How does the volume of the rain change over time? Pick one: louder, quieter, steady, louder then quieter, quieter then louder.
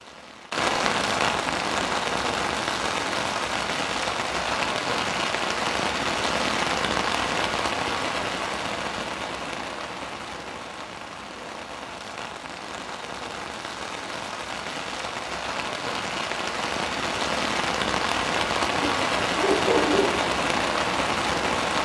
quieter then louder.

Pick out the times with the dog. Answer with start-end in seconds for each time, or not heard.
18.6-20.2.